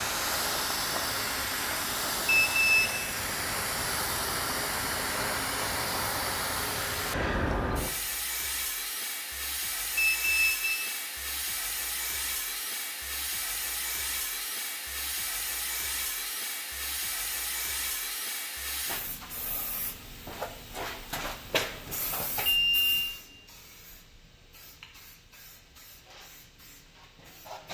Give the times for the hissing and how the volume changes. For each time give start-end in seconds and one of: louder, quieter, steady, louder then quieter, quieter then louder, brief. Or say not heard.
0.0-27.6 quieter.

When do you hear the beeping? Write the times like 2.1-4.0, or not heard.
2.2-3.0, 9.9-10.9, 22.4-23.1.